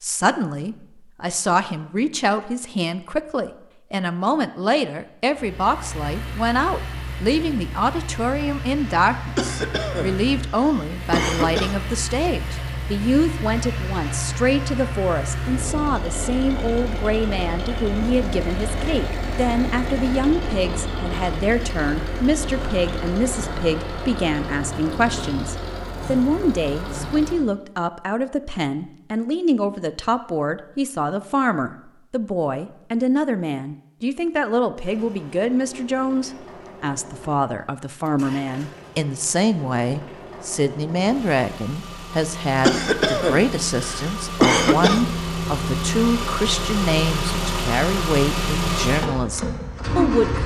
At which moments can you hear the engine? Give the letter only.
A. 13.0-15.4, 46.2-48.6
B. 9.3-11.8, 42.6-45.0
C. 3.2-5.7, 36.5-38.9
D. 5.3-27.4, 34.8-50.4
D.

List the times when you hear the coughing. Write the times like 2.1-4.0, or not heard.
9.3-11.8, 42.6-45.0.